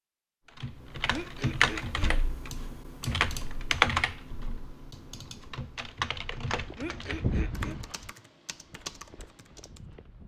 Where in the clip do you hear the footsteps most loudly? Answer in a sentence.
The volume of the footsteps peaks at 7 seconds.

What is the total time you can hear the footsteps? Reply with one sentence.
You can hear the footsteps for 4 seconds altogether.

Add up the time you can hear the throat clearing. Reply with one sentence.
You can hear the throat clearing for 2 seconds altogether.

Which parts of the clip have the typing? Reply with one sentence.
You can hear the typing from 0.6 to 9.8 s.